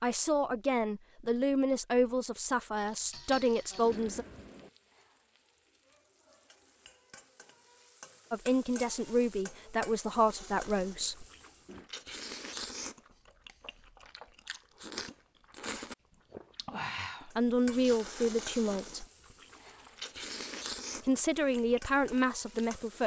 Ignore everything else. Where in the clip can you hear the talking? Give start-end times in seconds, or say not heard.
0.0-4.2, 8.3-11.2, 17.2-19.1, 21.1-23.0.